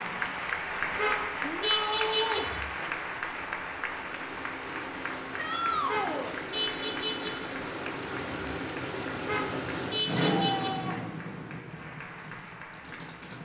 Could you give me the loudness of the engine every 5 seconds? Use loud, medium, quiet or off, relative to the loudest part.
medium, loud, loud.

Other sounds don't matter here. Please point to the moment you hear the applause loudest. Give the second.
1 s.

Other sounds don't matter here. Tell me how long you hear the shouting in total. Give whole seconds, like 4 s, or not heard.
3 s.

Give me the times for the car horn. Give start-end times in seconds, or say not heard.
0.9-2.4, 5.8-7.3, 9.2-10.7.